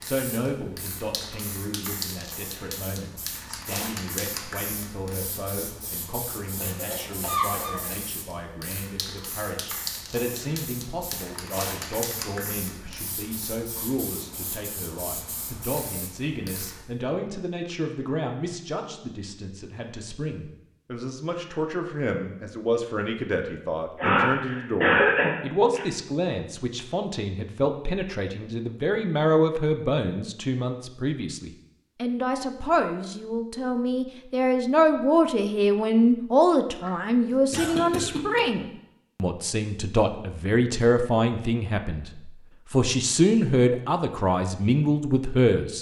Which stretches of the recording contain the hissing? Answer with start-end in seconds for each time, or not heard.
0.0-16.9.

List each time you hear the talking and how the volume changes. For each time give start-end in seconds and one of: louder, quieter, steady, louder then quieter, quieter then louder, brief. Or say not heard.
0.0-45.7 louder.